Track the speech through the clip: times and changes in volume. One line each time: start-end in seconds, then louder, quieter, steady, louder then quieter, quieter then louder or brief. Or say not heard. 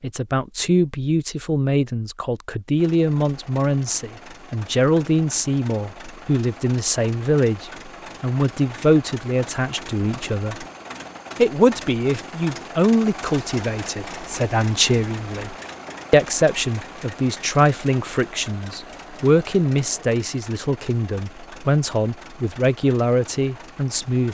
0.0-10.7 steady
11.3-24.2 steady.